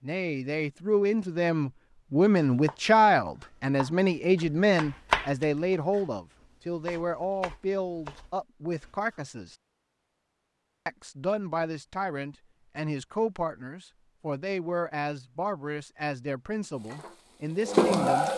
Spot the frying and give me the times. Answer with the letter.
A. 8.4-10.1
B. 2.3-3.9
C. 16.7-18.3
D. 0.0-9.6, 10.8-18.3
C.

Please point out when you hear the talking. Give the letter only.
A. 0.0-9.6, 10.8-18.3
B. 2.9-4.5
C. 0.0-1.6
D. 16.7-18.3
A.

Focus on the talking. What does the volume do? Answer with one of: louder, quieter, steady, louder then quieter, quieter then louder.
quieter.